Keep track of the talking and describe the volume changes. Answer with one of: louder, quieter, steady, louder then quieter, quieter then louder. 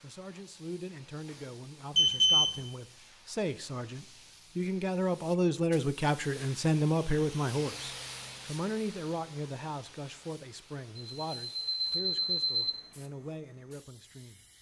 louder then quieter.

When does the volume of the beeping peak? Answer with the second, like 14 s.
2 s.